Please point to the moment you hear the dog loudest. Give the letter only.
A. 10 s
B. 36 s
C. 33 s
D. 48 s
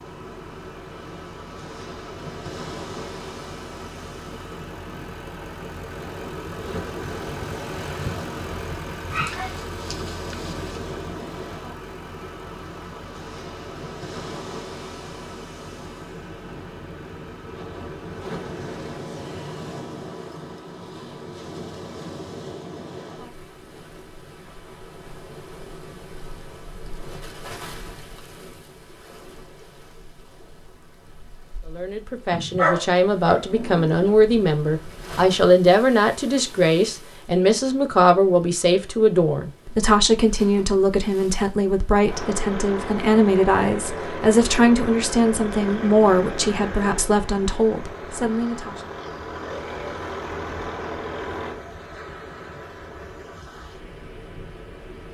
C.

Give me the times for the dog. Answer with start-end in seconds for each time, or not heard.
9.1-10.8, 32.3-34.1.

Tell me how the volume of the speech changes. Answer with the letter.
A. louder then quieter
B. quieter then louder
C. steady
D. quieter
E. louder
C.